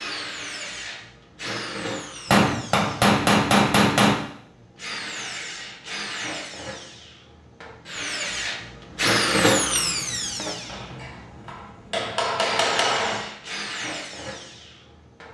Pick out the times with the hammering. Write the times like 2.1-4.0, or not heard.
2.3-4.2, 10.7-13.3.